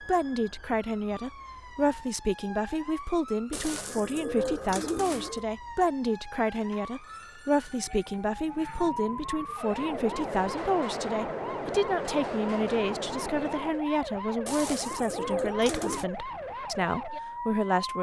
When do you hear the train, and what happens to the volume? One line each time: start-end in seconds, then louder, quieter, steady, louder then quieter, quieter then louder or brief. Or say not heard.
9.6-13.8 steady.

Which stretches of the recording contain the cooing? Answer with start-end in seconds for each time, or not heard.
3.5-5.5, 14.4-16.1.